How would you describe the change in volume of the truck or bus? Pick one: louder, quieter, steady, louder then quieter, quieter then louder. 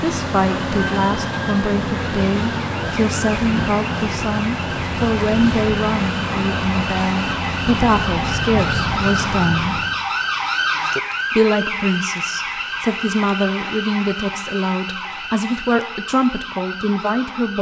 steady.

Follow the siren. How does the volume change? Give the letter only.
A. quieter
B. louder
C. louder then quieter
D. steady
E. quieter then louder
C.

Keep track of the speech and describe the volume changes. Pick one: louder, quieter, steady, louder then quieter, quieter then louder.
steady.